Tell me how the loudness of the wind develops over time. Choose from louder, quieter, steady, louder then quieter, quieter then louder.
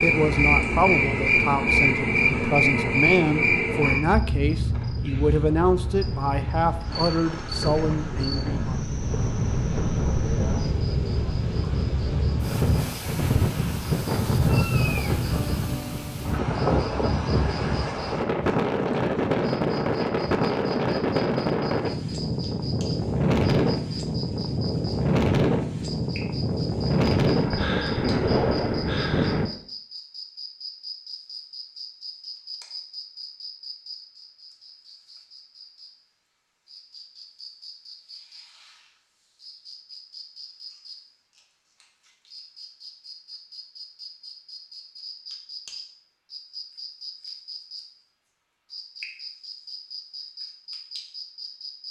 louder.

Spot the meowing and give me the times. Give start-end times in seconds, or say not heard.
14.4-15.2.